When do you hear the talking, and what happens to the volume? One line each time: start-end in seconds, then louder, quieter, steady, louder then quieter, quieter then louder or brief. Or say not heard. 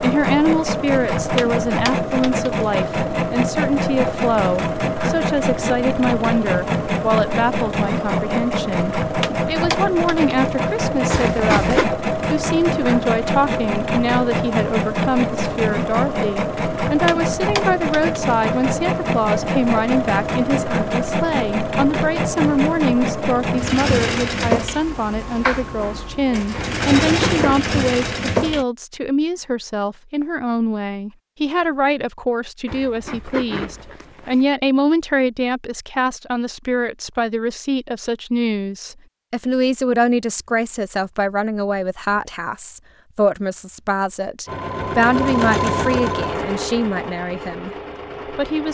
0.0-47.7 steady
48.3-48.7 brief.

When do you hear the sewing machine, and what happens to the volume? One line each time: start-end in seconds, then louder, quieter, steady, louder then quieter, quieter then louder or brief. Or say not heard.
0.0-28.6 steady
44.5-48.7 quieter.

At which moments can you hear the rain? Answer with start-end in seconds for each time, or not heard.
not heard.